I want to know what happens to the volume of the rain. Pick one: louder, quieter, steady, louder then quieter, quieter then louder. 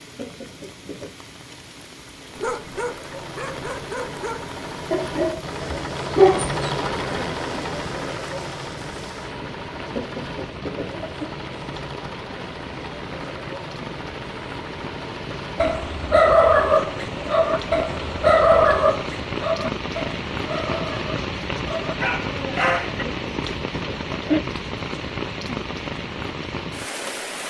louder.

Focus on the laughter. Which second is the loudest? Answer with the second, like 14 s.
24 s.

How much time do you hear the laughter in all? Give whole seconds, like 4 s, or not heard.
4 s.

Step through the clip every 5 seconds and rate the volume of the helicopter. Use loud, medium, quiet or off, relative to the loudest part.
medium, loud, medium, medium, off, off.